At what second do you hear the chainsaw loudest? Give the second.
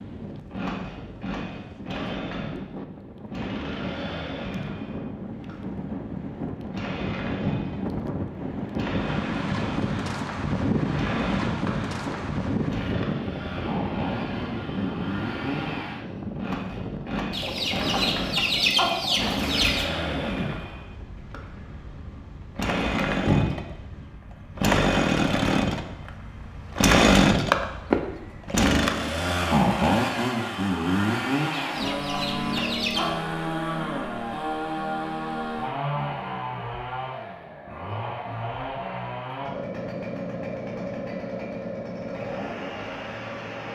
27 s.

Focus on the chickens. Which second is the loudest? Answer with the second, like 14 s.
19 s.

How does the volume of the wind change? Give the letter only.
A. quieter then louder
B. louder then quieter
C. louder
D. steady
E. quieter
B.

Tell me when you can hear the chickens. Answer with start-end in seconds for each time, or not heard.
17.3-19.9, 31.5-33.1.